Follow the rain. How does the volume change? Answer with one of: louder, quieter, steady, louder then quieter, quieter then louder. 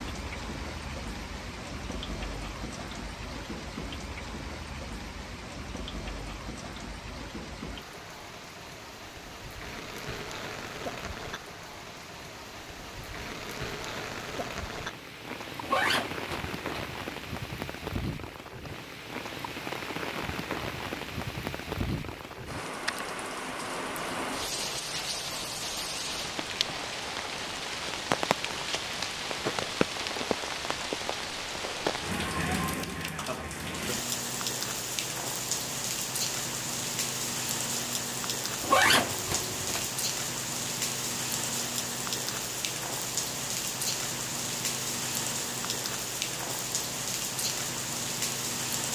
louder.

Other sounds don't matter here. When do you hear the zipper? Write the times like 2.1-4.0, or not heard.
15.6-16.9, 38.6-39.9.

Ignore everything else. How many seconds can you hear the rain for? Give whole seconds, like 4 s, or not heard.
49 s.